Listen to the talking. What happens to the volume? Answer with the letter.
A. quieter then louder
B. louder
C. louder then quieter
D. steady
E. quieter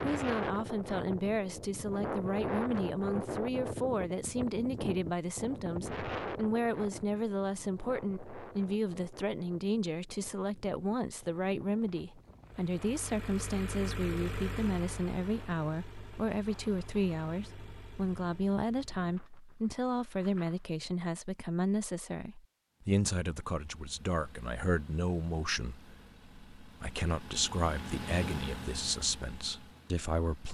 D.